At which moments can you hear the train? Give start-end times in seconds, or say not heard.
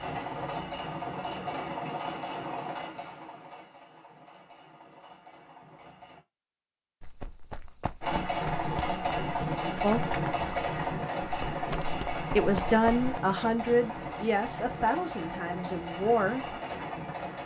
0.0-6.2, 8.0-17.4.